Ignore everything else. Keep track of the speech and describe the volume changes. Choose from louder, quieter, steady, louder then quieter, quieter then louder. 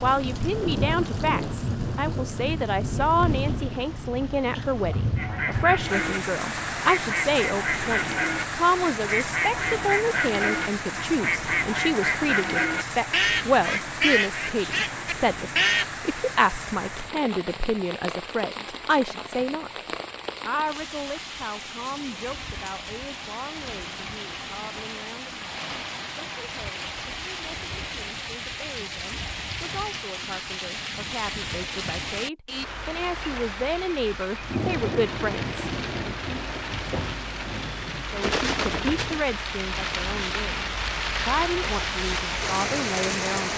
quieter then louder.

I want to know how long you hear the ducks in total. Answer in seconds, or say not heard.
11 s.